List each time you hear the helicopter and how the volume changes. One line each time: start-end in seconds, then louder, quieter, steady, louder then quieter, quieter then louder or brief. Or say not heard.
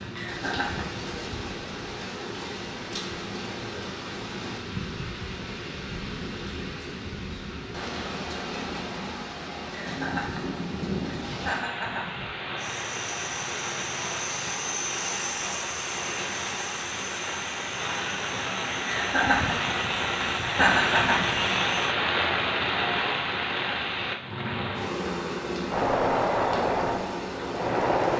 12.6-21.9 quieter
25.7-28.1 brief.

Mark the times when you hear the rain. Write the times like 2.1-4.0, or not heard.
0.0-28.1.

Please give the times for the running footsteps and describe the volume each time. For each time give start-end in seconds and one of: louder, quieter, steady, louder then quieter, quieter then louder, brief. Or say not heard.
not heard.